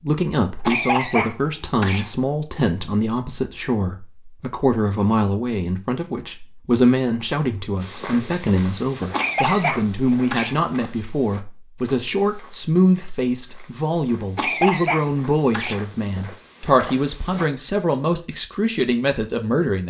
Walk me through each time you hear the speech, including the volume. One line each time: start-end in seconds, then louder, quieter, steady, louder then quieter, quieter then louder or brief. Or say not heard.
0.0-19.8 steady.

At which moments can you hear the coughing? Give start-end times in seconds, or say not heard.
0.6-2.1, 9.1-10.6, 14.3-15.8.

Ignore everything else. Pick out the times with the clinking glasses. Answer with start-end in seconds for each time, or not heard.
not heard.